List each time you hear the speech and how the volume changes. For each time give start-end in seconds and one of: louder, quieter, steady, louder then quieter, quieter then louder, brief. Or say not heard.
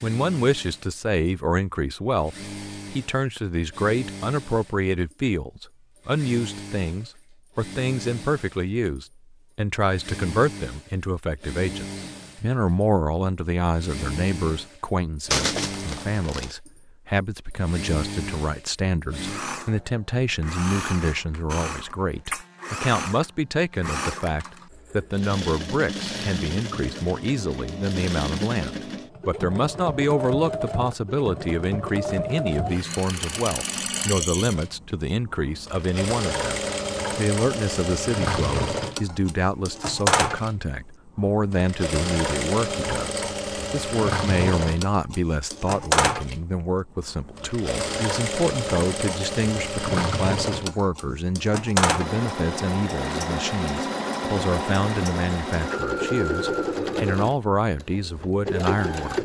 0.0-59.2 steady.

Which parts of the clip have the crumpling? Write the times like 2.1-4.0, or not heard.
15.3-16.6.